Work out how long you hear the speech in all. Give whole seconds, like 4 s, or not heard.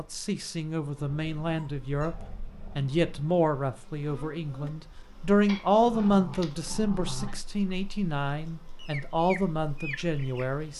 11 s.